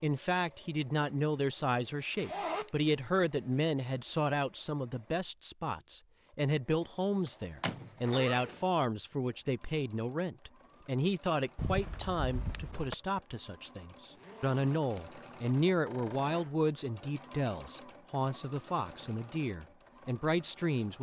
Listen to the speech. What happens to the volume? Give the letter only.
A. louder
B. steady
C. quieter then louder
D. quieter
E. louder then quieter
B.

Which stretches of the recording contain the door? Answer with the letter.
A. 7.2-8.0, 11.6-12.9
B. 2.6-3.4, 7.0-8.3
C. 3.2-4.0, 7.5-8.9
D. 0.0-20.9
A.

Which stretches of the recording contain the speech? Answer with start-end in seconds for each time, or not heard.
0.0-20.9.